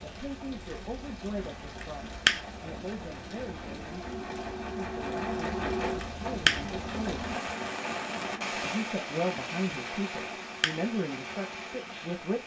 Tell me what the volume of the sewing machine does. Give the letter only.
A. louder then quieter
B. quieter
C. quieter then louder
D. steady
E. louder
A.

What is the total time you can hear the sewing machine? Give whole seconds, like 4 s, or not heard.
12 s.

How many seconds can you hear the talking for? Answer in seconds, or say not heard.
11 s.